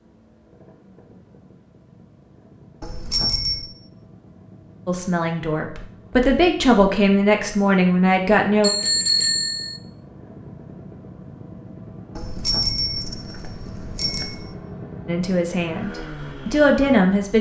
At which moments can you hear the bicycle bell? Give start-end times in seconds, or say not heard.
2.8-3.7, 8.6-9.8, 12.2-14.6.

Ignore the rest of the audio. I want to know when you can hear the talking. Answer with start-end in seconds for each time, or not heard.
4.8-8.7, 15.1-17.3.